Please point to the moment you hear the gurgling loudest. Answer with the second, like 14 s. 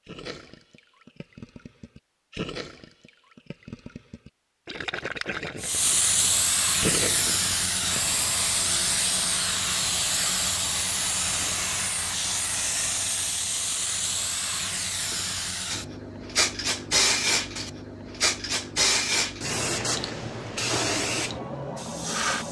7 s.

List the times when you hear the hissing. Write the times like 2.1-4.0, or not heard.
5.6-22.4.